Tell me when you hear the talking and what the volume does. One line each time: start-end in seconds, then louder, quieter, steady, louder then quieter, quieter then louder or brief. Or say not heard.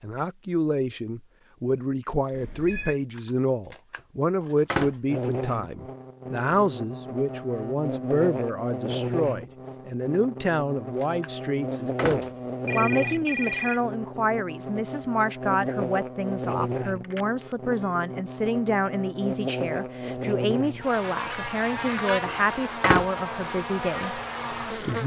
0.0-25.0 steady.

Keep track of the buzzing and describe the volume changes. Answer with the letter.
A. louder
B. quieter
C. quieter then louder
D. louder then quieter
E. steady
E.